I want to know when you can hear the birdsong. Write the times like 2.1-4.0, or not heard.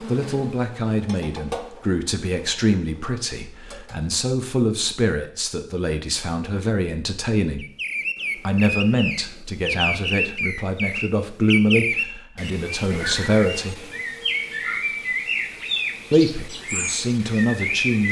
7.6-18.0.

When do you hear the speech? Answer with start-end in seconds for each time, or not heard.
0.0-7.7, 8.3-13.8, 16.1-18.0.